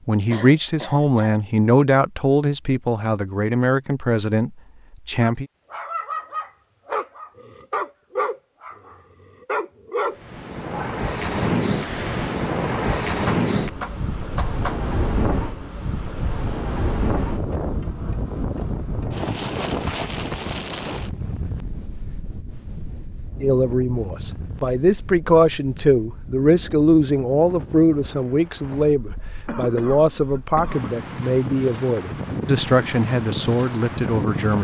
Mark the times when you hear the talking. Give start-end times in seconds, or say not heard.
0.1-5.5, 23.4-34.5.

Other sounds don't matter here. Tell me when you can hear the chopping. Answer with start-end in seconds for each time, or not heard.
13.2-14.8.